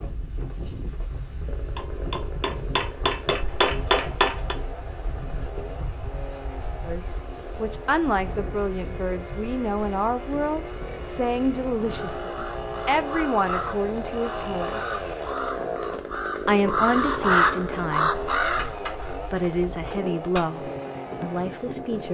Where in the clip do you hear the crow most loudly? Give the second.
17 s.